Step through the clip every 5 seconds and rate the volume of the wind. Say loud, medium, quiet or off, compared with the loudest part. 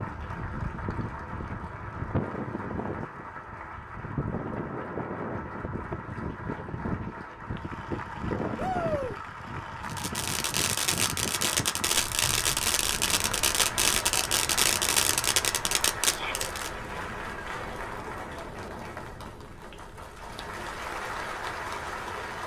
loud, loud, medium, quiet, quiet.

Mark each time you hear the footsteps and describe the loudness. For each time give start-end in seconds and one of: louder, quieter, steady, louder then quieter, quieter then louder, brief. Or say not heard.
not heard.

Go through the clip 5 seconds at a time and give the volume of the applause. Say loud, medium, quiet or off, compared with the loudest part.
medium, medium, loud, loud, loud.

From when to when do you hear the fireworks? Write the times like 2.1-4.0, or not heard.
9.8-16.7.